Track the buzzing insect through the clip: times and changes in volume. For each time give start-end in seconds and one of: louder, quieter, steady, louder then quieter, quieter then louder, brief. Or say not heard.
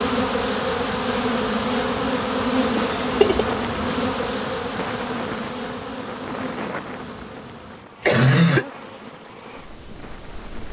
0.0-10.6 quieter.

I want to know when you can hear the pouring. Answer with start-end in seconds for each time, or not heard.
not heard.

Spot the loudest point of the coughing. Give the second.
8 s.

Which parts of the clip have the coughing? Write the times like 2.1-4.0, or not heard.
2.8-3.5, 8.0-8.7.